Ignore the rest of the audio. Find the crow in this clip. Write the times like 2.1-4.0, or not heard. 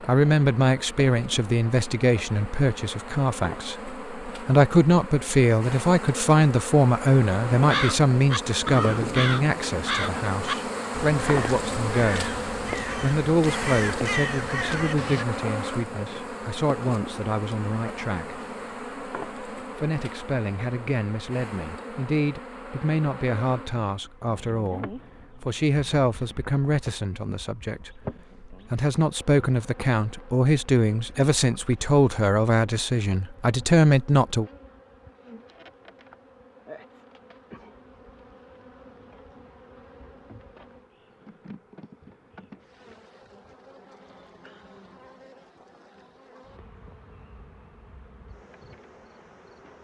7.5-15.2.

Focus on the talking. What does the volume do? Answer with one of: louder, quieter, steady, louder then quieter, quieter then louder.
quieter then louder.